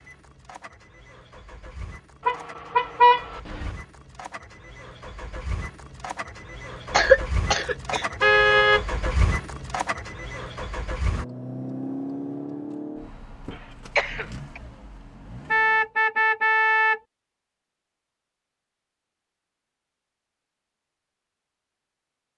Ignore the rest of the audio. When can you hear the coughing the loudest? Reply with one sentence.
The volume of the coughing peaks at 7 seconds.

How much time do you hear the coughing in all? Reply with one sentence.
The coughing can be heard for 2 seconds in total.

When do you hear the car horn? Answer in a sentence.
The car horn can be heard from 2.2 to 3.7 s, from 8.2 to 8.8 s and from 15.5 to 17.0 s.